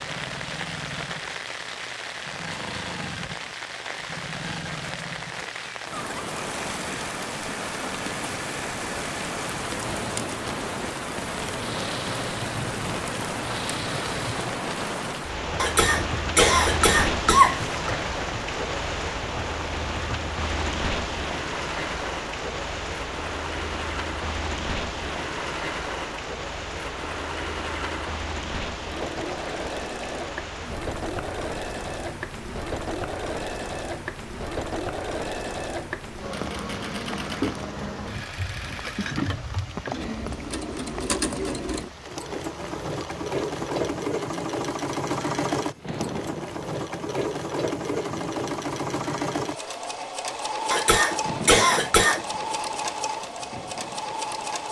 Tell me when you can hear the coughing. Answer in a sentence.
The coughing can be heard from 15.6 to 17.7 s and from 50.7 to 52.2 s.